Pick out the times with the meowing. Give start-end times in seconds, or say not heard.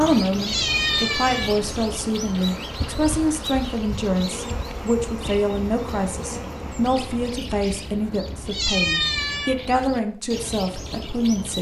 0.4-1.6, 8.5-9.6.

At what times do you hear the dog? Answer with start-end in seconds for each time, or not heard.
not heard.